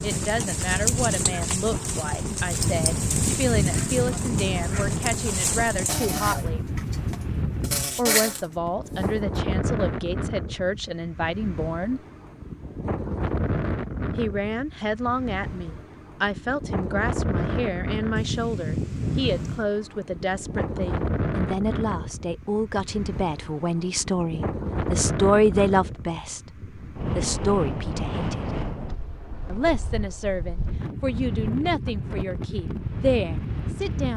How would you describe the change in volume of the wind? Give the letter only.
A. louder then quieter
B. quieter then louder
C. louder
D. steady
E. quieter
D.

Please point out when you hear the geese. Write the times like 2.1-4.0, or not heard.
2.6-4.7, 18.1-19.6.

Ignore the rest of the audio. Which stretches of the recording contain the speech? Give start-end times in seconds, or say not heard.
0.0-6.7, 8.0-12.0, 14.2-28.4, 29.4-34.1.